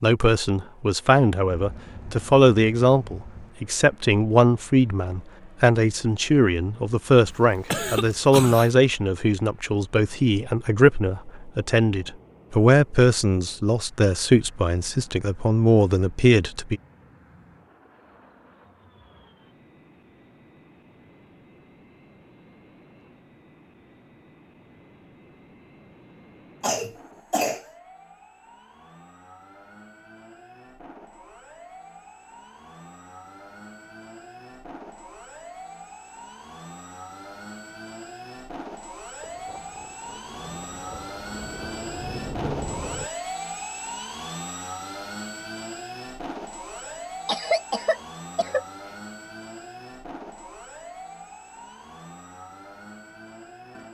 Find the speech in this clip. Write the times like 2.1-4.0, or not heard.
0.0-16.8.